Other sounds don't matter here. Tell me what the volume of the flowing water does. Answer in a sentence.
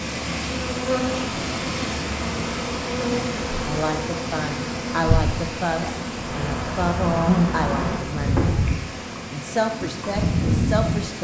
The volume of the flowing water goes down.